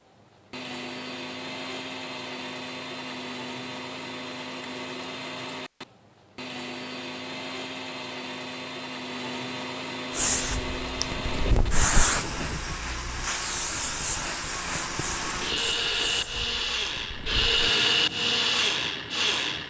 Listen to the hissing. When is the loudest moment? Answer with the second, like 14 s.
12 s.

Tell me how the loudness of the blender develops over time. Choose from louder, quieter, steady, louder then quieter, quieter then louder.
louder.